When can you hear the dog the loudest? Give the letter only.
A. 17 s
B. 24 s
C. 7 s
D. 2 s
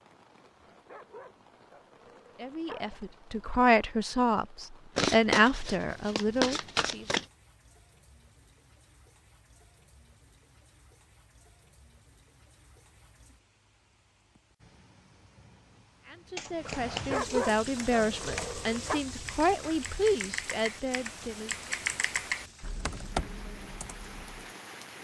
A.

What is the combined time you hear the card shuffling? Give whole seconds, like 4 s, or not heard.
3 s.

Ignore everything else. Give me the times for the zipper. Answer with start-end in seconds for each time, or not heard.
not heard.